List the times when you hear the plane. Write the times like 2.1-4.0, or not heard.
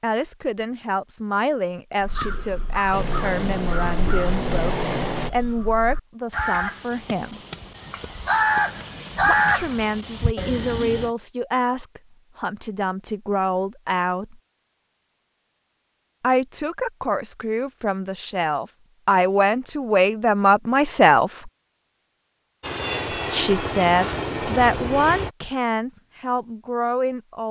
2.9-5.3, 22.6-25.3.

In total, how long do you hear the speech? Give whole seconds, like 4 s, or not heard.
22 s.